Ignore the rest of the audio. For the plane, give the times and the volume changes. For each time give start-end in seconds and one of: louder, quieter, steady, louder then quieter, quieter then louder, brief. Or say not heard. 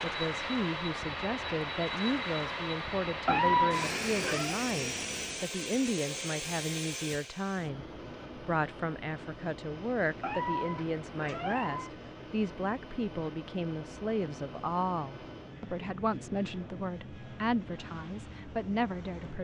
0.0-19.3 quieter.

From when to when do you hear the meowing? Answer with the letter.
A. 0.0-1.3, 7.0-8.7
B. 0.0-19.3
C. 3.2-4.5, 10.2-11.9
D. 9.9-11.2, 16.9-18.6
C.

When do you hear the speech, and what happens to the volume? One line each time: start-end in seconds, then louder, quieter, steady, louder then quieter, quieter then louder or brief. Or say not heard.
0.0-19.3 steady.